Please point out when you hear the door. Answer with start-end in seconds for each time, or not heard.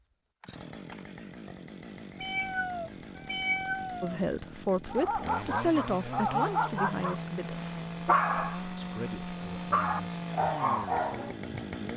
not heard.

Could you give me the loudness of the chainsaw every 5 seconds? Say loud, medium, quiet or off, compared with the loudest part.
medium, loud, loud.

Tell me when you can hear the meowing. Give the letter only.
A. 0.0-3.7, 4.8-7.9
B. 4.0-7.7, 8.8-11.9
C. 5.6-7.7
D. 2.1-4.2
D.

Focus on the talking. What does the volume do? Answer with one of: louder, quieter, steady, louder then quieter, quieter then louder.
quieter.